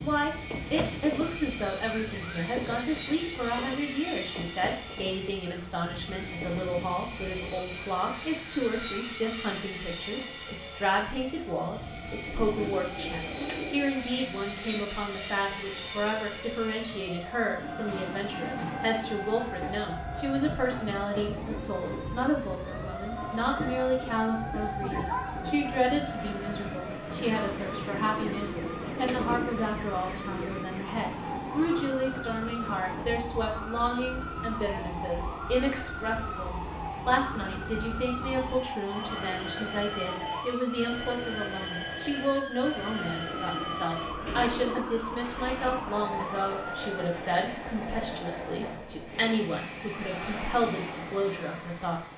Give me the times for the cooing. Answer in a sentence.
The cooing can be heard from 12.2 to 13.9 s, from 27.9 to 29.6 s and from 43.2 to 45.0 s.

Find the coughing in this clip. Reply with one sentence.
You can hear the coughing from 24.7 to 25.4 s.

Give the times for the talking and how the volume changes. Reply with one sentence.
You can hear the talking from 0.0 to 52.0 s, at a steady volume.